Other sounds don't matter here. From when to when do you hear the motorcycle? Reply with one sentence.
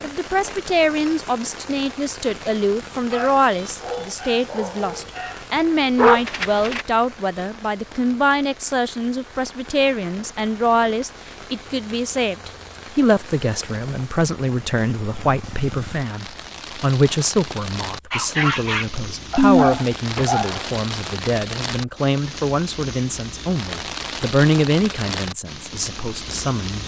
The motorcycle can't be heard in this clip.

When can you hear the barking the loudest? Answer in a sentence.
The loudest moment of the barking is at 6 seconds.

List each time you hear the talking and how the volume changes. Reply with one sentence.
You can hear the talking from 0.0 to 26.8 s, at a steady volume.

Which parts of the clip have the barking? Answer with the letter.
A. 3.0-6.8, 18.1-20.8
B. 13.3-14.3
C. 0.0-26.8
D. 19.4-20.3
A.